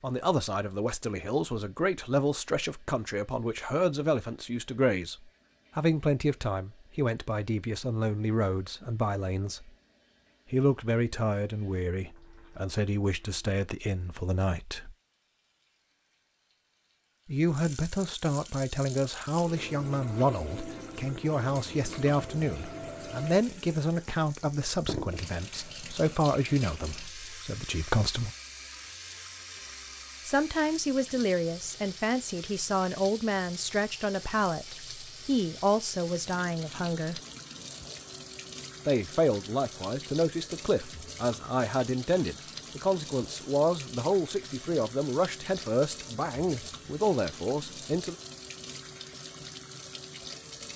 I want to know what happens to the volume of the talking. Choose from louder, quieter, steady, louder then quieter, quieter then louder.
steady.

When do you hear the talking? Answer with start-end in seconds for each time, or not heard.
0.0-5.2, 5.8-9.7, 10.5-14.9, 17.2-28.3, 30.2-37.2, 38.9-48.1.